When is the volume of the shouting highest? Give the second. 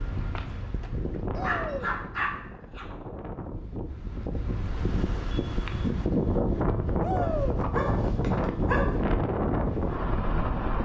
7 s.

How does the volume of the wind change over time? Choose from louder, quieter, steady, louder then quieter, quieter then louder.
louder.